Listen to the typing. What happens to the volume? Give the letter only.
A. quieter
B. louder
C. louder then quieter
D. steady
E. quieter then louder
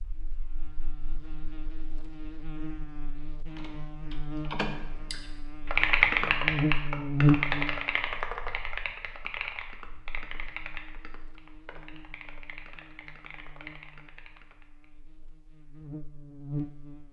A.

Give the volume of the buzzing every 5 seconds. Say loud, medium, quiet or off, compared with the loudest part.
quiet, loud, quiet, medium.